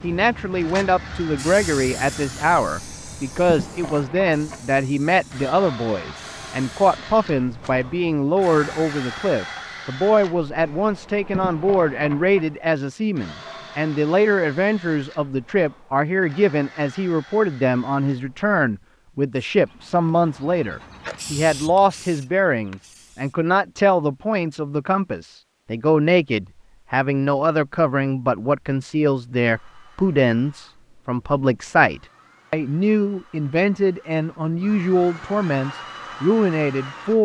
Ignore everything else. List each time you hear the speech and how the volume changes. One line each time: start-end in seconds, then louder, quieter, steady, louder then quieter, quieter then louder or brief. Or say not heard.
0.0-37.1 steady.